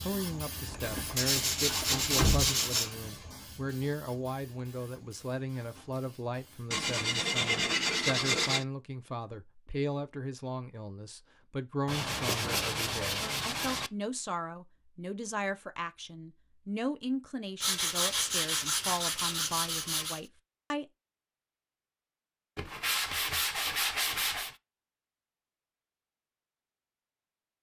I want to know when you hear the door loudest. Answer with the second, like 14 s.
2 s.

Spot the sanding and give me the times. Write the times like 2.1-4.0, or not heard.
1.1-3.0, 6.7-8.7, 11.8-13.9, 17.6-20.2, 22.6-24.6.